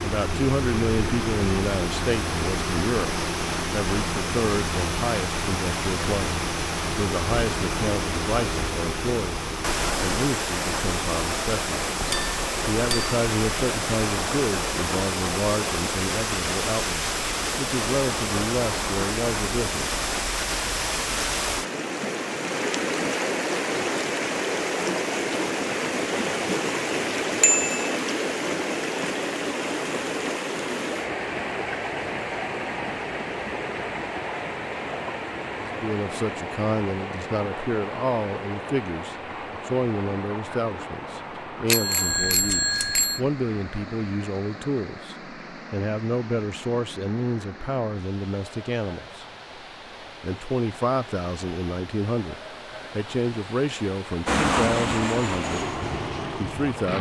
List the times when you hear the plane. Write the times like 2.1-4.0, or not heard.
54.2-56.9.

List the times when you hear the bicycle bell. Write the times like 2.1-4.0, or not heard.
12.1-13.2, 27.4-27.9, 41.7-43.2.